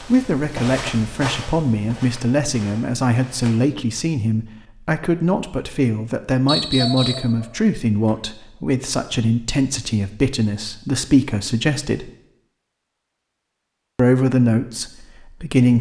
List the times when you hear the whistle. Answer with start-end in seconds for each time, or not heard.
6.5-7.3.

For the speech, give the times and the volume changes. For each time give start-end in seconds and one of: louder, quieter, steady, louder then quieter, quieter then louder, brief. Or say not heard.
0.0-12.1 steady
13.9-15.7 brief.